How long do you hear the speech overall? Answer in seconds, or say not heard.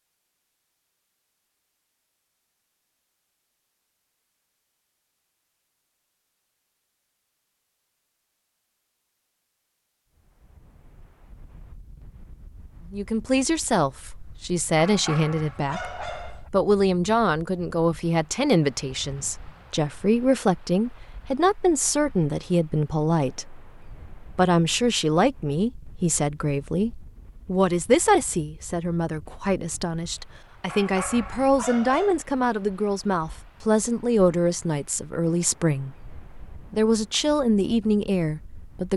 26 s.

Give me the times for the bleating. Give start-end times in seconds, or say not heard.
not heard.